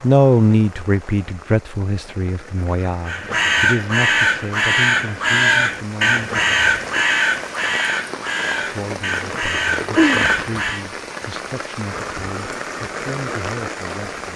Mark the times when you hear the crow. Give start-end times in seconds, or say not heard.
3.0-10.8.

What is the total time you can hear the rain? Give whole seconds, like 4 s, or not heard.
14 s.